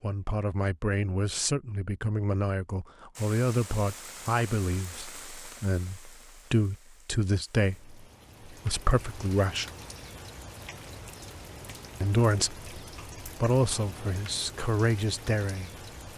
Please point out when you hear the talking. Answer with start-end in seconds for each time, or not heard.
0.0-9.7, 12.0-15.7.